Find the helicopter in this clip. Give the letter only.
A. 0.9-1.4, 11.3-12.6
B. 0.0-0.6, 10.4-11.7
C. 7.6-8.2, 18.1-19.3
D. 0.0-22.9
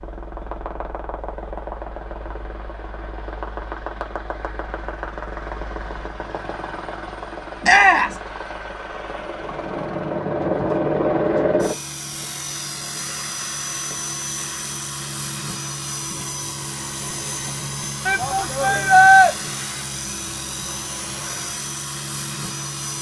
D.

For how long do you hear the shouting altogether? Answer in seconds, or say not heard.
2 s.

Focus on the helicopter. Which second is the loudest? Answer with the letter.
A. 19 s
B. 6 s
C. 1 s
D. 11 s
D.